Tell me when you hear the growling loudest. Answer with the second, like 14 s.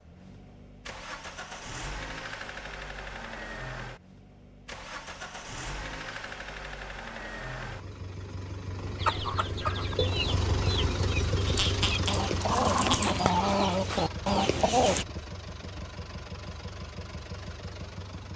13 s.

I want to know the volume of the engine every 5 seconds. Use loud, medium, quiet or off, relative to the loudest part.
medium, medium, loud, medium.